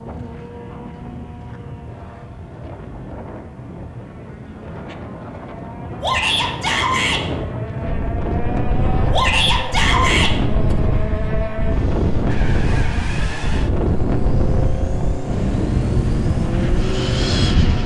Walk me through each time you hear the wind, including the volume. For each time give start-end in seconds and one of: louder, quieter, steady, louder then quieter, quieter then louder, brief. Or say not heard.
0.0-17.8 louder.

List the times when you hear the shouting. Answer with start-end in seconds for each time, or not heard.
6.0-7.2, 9.1-10.3.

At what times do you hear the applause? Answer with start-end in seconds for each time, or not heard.
not heard.